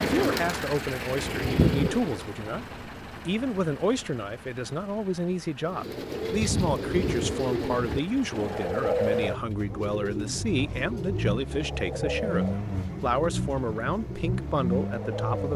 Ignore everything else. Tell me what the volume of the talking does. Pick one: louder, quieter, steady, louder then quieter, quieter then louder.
steady.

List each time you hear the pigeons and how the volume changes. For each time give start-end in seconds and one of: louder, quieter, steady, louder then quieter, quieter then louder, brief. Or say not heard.
0.0-2.2 brief
5.7-15.5 quieter.